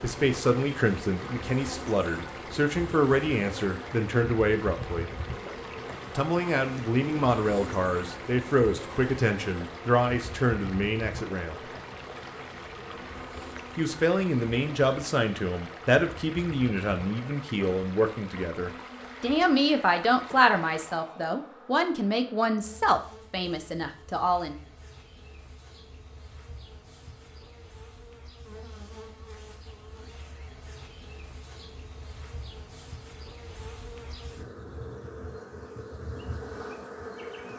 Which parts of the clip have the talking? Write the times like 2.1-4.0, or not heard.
0.0-5.1, 6.2-11.7, 13.8-24.6.